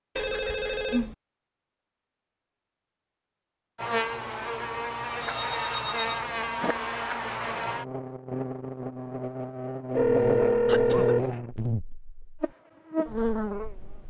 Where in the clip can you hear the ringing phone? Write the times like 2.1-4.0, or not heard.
0.1-1.1, 5.2-6.8, 9.9-11.2.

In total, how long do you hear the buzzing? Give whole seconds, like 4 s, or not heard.
10 s.